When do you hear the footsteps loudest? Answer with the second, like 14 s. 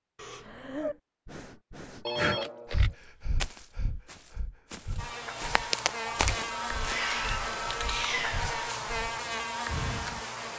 6 s.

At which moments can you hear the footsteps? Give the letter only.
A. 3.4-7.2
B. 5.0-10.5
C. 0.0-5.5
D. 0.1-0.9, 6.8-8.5
A.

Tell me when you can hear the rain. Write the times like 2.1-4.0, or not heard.
not heard.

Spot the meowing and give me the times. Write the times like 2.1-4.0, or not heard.
0.1-0.9, 6.8-8.5.